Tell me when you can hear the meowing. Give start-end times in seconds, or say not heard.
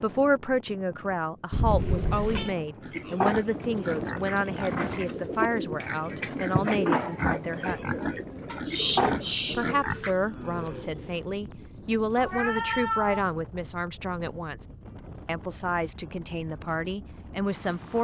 1.5-2.5, 8.4-9.7, 12.2-13.2.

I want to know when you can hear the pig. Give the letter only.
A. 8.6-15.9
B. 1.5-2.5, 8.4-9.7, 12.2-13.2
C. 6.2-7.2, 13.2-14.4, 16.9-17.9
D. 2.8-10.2
D.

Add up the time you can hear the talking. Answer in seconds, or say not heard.
16 s.